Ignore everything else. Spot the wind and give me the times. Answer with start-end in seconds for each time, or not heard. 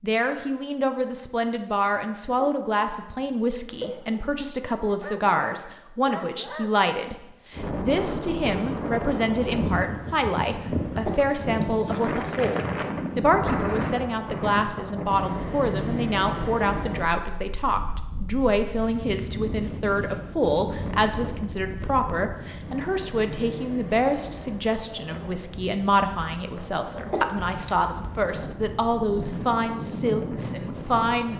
7.5-31.3.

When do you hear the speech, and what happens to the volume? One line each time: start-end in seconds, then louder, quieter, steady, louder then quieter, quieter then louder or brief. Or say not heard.
0.0-31.3 steady.